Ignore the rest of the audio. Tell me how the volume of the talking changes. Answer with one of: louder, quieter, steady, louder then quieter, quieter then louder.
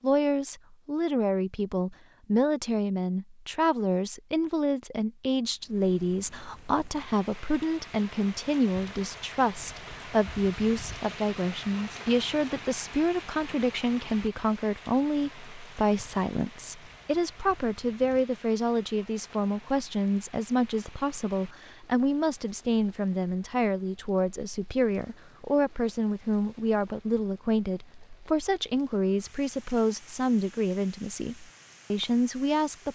steady.